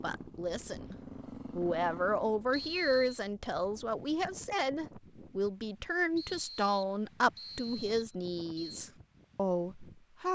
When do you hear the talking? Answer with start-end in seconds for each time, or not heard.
0.0-0.9, 1.6-10.3.